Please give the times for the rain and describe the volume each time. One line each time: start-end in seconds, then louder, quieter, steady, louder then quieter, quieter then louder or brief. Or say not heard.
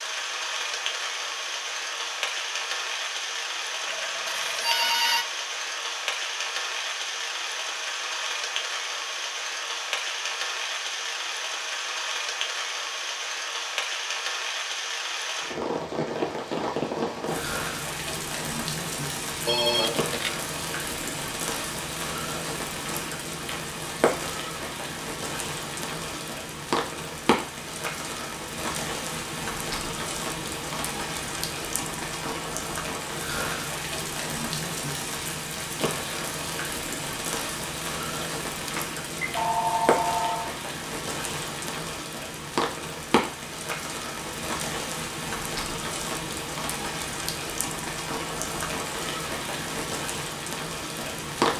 0.0-51.5 steady.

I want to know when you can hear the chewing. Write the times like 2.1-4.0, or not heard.
not heard.